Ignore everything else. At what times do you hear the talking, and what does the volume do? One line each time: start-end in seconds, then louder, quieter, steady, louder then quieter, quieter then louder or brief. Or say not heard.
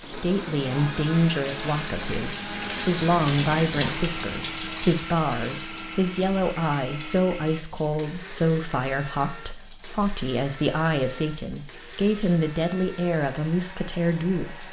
0.0-14.6 steady.